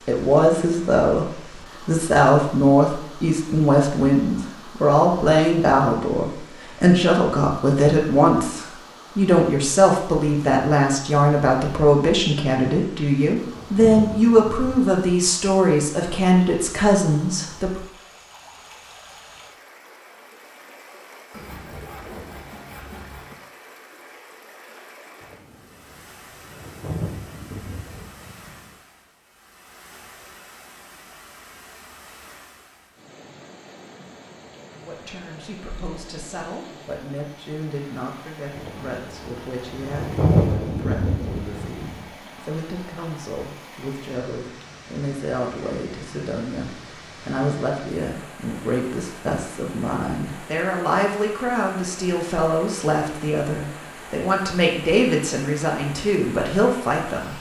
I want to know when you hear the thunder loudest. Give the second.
40 s.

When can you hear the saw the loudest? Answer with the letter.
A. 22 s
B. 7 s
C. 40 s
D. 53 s
A.